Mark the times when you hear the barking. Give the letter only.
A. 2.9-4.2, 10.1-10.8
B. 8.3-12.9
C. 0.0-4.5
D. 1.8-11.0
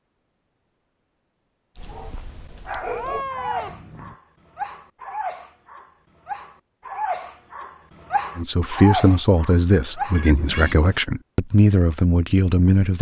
D.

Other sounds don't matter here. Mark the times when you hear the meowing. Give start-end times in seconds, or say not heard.
2.9-4.2, 10.1-10.8.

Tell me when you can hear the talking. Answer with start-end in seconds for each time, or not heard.
8.3-12.9.